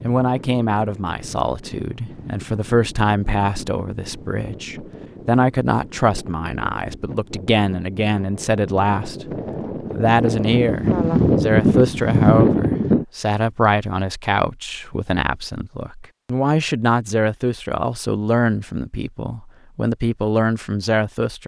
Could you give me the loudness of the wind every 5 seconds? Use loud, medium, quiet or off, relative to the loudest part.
quiet, quiet, loud, off, off.